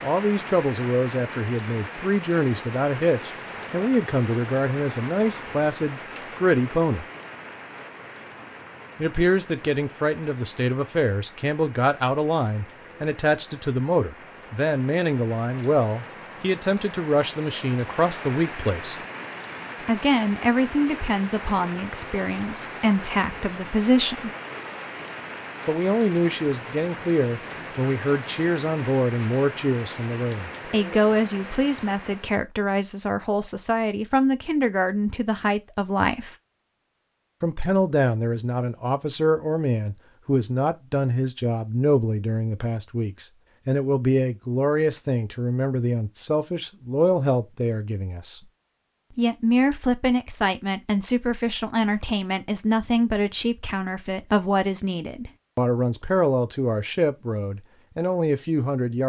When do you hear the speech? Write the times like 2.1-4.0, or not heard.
0.0-7.0, 8.9-19.0, 19.9-24.3, 25.6-36.4, 37.4-48.4, 49.1-59.0.